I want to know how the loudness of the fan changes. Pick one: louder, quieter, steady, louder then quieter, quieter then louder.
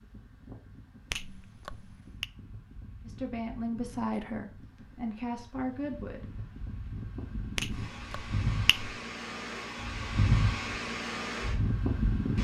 louder.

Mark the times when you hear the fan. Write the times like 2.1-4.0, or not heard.
0.0-12.3.